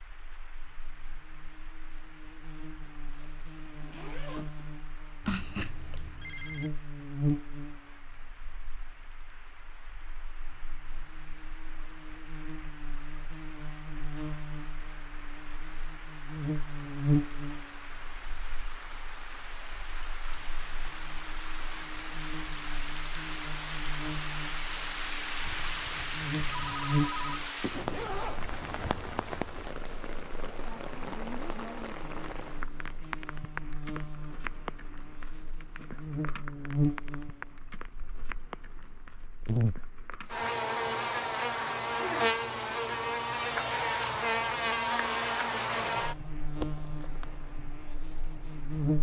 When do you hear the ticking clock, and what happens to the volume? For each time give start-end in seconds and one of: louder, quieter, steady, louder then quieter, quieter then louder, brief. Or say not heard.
not heard.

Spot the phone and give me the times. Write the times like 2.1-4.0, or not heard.
5.2-6.7, 25.4-27.4.